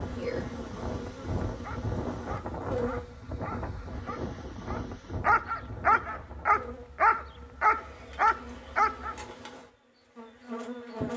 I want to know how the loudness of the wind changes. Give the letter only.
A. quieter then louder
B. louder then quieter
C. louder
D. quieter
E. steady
D.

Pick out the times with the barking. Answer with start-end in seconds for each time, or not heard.
1.4-9.2.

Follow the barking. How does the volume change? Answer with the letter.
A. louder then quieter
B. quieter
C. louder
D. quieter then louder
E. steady
C.